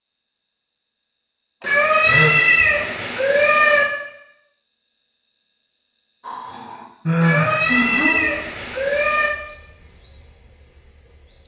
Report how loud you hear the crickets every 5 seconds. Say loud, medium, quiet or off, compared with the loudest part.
medium, loud, loud.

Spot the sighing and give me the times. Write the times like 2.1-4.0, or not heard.
1.6-2.4, 6.2-8.2.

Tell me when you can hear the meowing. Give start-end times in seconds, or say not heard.
1.6-3.9, 7.2-9.3.